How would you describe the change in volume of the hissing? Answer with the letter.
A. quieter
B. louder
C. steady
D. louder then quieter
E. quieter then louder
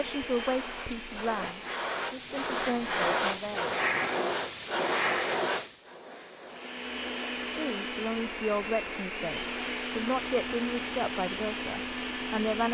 D.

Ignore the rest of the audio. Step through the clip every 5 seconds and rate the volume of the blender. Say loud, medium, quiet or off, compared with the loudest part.
medium, loud, loud.